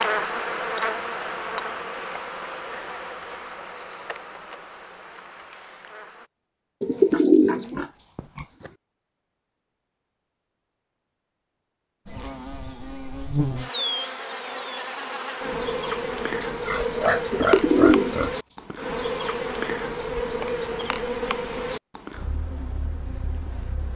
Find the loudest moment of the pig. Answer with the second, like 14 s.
17 s.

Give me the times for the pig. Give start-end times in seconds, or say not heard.
7.0-8.5, 16.4-18.4.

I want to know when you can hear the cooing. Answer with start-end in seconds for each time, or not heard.
6.8-8.7, 17.3-18.8.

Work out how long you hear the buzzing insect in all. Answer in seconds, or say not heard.
18 s.